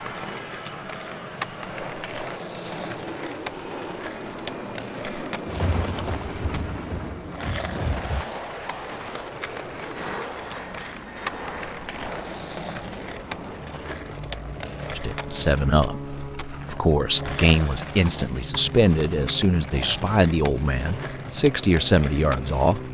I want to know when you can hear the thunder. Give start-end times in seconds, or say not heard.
5.5-8.2.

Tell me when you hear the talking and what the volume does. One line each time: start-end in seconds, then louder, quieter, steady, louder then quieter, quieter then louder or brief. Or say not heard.
14.9-22.8 steady.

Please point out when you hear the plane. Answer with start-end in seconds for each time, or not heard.
0.0-22.8.